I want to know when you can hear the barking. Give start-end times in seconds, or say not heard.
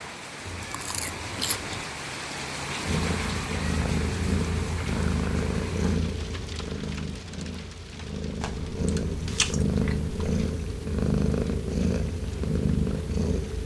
not heard.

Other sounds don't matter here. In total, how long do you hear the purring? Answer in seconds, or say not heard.
11 s.